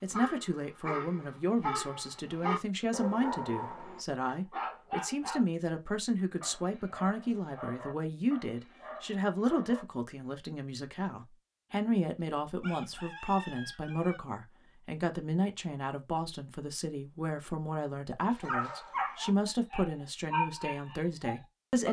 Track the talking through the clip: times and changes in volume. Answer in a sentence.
You can hear the talking from 0.0 to 21.8 s, at a steady volume.